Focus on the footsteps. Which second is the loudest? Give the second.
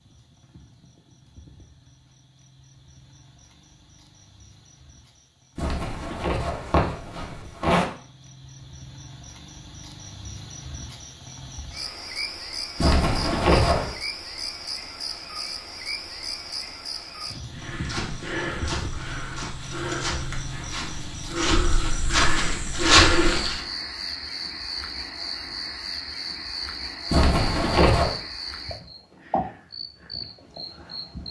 23 s.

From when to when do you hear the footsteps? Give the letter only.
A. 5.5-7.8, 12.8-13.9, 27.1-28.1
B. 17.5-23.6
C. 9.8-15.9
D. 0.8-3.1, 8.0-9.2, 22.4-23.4
B.